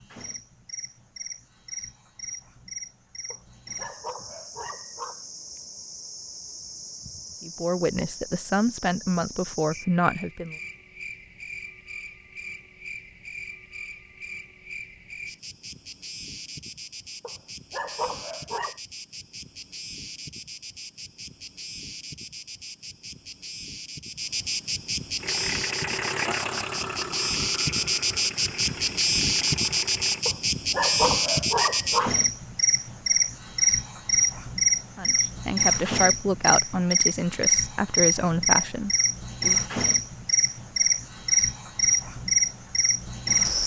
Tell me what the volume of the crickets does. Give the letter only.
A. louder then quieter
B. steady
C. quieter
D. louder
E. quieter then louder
D.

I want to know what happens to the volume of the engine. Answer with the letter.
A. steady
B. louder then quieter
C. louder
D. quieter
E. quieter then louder
D.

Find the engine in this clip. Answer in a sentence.
The engine can be heard from 25.1 to 30.2 s.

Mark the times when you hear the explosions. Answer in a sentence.
The explosions can't be heard in this clip.